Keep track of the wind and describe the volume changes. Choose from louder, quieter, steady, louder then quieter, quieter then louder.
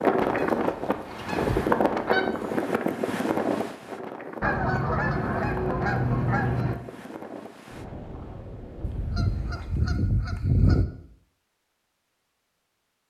quieter.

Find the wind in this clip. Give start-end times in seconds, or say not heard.
0.0-9.8.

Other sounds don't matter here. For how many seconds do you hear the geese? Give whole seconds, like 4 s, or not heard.
7 s.